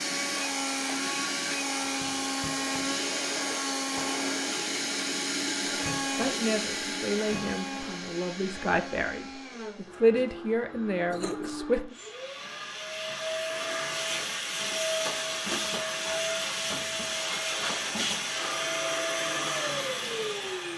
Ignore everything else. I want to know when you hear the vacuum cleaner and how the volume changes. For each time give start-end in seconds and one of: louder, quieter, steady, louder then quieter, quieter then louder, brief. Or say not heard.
0.0-20.7 quieter then louder.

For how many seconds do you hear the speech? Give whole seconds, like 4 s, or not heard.
6 s.